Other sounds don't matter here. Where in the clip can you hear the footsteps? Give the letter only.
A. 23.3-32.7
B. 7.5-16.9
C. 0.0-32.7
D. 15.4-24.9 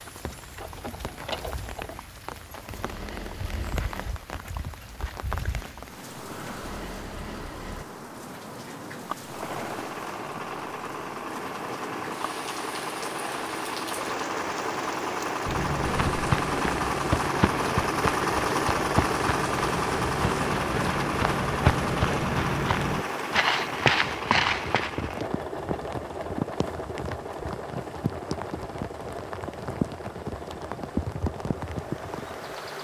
D.